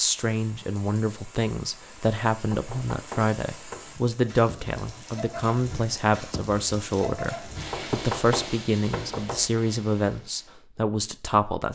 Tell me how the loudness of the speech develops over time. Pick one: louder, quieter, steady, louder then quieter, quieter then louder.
steady.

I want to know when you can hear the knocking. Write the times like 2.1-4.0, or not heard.
2.5-4.0, 7.7-9.5.